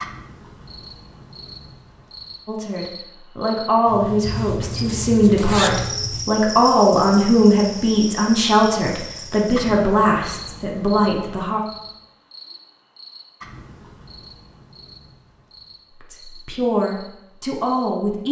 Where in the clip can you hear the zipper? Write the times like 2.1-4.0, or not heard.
4.2-6.2.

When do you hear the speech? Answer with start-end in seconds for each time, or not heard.
2.5-11.6, 16.0-18.2.